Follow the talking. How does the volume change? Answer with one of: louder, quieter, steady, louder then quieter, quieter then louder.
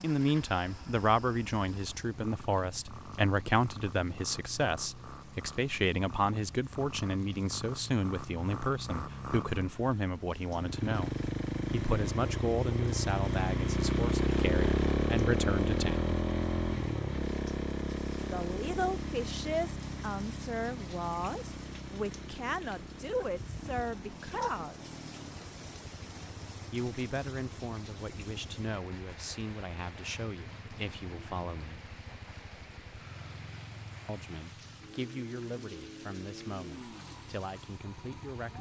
quieter.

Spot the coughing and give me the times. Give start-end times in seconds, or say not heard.
not heard.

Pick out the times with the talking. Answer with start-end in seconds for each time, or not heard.
0.0-16.1, 18.2-24.9, 26.7-31.9, 34.0-38.5.